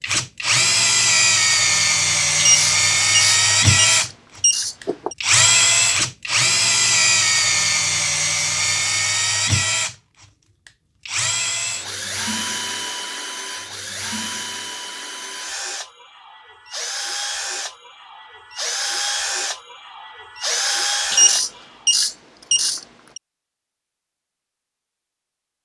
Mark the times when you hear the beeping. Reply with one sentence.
You can hear the beeping from 2.4 to 5.2 s and from 21.1 to 23.2 s.